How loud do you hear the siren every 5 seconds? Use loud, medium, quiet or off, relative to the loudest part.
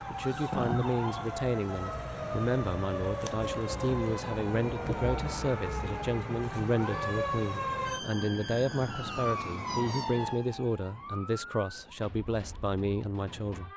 loud, loud, medium.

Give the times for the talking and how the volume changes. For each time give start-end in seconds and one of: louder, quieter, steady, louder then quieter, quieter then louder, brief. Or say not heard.
0.1-13.7 steady.